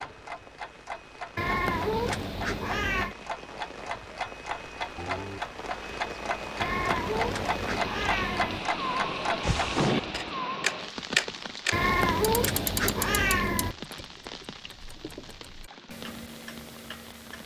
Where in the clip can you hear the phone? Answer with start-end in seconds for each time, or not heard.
5.0-5.4, 9.4-10.3.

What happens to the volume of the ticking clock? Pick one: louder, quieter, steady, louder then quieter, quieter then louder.
louder then quieter.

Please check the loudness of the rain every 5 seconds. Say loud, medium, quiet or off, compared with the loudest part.
medium, loud, loud, quiet.